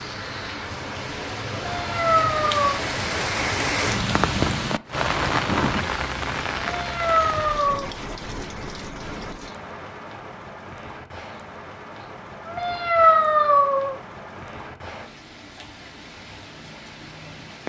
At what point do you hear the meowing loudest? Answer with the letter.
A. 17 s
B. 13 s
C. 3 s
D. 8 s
B.